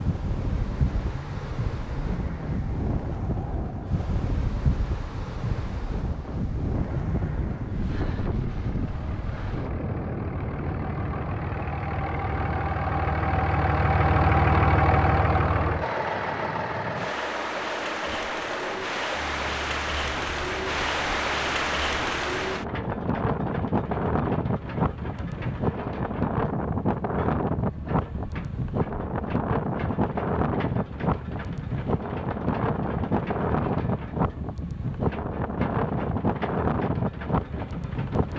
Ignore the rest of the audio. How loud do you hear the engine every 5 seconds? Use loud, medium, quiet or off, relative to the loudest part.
quiet, quiet, loud, loud, quiet, quiet, quiet, quiet.